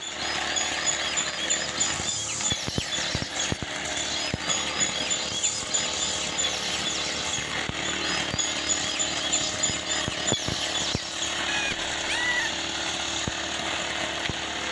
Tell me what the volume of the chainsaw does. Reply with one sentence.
The loudness of the chainsaw stays about the same.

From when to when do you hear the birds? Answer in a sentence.
The birds can be heard from 0.0 to 12.5 s.